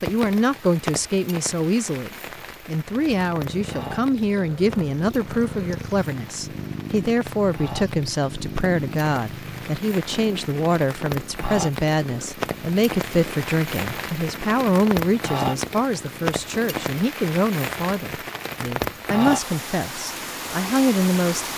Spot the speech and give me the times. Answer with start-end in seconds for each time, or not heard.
0.0-21.5.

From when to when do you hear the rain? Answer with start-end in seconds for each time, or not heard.
0.0-21.5.